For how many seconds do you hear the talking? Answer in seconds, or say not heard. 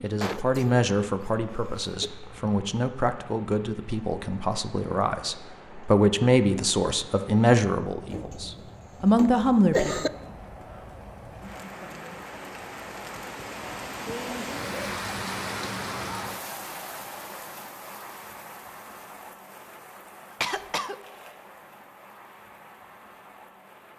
10 s.